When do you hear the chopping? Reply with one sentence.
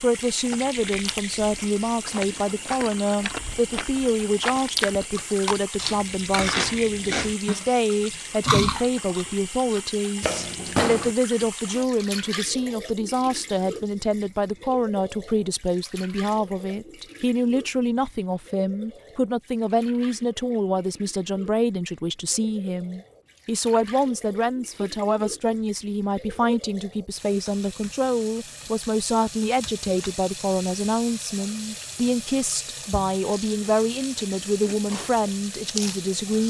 The chopping can be heard from 10.2 to 11.2 s.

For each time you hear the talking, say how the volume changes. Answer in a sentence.
The talking can be heard from 0.0 to 36.4 s, at a steady volume.